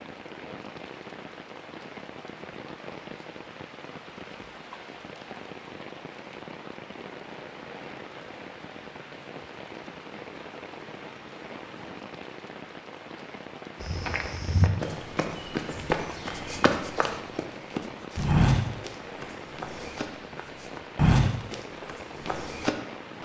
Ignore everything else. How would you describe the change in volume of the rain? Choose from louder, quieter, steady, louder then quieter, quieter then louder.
steady.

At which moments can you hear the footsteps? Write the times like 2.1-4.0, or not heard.
13.8-22.8.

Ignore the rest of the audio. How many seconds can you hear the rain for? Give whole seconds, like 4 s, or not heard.
23 s.